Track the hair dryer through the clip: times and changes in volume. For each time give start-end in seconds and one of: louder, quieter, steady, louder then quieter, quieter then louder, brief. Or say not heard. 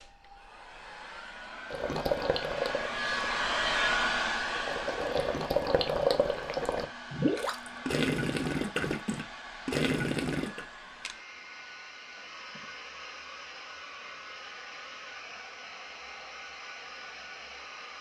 0.0-17.9 quieter.